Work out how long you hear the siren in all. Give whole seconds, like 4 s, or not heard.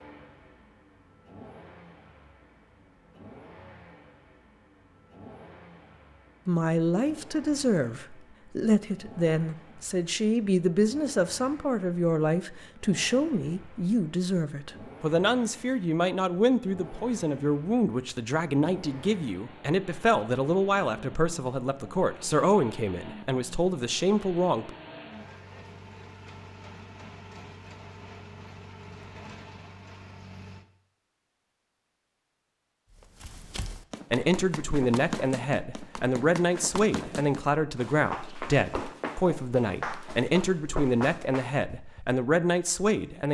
not heard.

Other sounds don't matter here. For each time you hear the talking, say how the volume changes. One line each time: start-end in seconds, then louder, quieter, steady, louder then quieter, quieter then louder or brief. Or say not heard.
6.5-24.7 steady
34.1-43.2 steady.